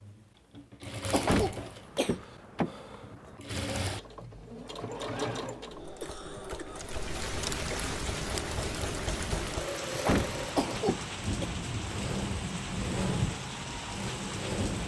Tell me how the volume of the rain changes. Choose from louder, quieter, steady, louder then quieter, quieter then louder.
steady.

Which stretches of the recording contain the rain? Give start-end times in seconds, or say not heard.
6.7-14.8.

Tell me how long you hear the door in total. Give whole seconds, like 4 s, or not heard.
4 s.